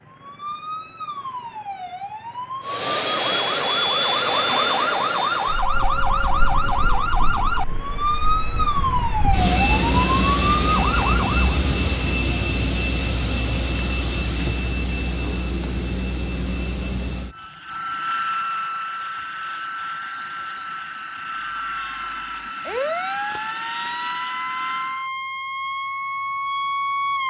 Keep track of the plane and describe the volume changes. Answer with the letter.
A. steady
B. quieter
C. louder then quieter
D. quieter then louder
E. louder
B.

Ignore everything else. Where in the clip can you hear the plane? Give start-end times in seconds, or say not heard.
2.6-25.1.